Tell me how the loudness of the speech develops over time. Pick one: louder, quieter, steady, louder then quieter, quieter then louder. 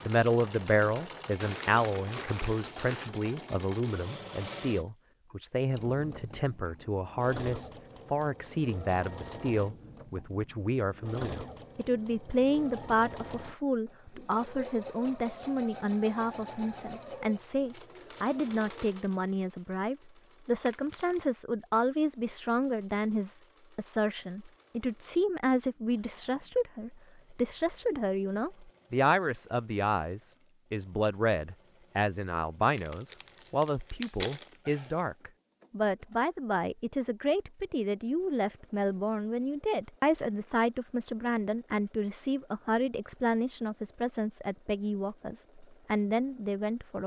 steady.